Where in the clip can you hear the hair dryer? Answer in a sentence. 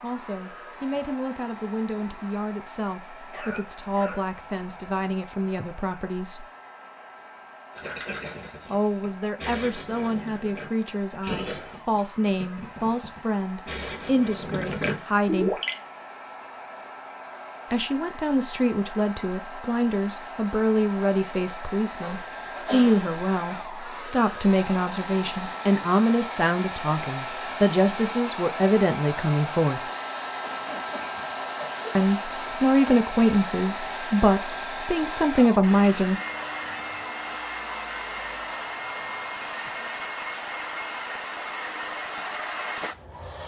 You can hear the hair dryer from 0.0 to 43.4 s.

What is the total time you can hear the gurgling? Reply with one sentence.
You can hear the gurgling for 8 seconds altogether.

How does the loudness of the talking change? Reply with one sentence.
The loudness of the talking goes up.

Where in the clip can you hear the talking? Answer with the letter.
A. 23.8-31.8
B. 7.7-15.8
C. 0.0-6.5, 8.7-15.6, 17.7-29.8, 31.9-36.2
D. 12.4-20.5
C.